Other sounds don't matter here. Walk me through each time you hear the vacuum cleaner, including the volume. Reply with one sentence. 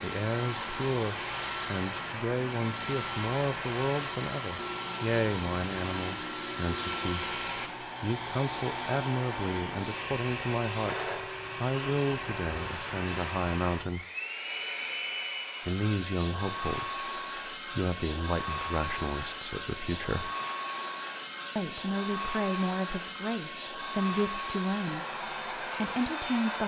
The vacuum cleaner can be heard from 0.0 to 26.6 s, at a steady volume.